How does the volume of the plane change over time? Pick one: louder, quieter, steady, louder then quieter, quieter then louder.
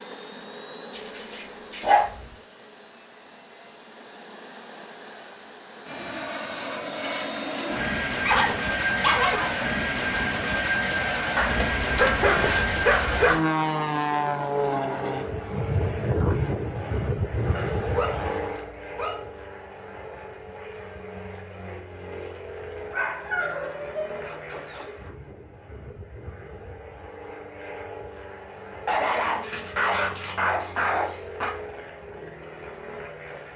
louder then quieter.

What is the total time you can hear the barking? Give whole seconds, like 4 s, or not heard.
11 s.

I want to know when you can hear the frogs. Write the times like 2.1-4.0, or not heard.
not heard.